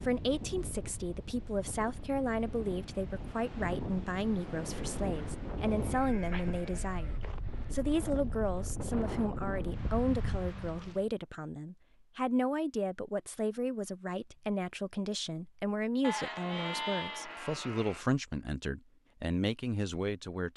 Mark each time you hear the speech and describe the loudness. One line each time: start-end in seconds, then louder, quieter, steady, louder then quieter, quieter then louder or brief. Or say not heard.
0.0-20.5 steady.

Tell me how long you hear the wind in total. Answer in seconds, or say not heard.
11 s.